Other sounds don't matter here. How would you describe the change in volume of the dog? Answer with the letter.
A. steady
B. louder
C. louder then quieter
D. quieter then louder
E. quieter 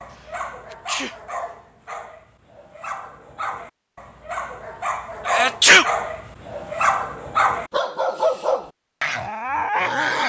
B.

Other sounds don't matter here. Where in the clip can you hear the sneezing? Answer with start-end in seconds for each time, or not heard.
0.7-1.1, 5.2-5.9.